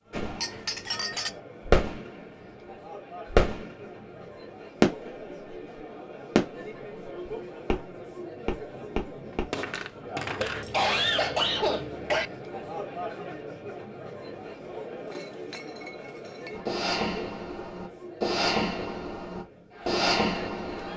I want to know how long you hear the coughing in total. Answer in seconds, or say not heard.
2 s.